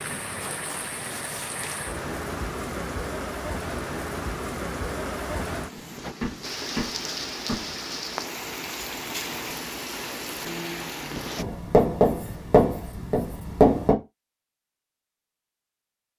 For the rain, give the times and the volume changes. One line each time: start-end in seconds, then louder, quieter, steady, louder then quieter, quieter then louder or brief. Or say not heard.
0.0-11.4 steady.